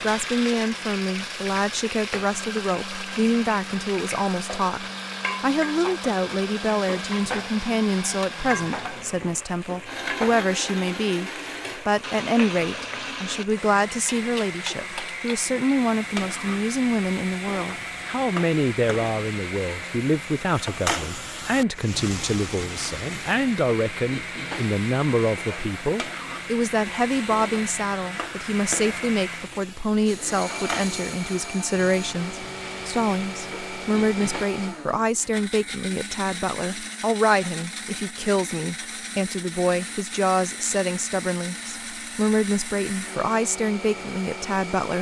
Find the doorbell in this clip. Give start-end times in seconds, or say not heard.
not heard.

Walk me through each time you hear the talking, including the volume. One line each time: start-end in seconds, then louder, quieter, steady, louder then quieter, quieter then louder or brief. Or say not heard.
0.0-44.9 steady.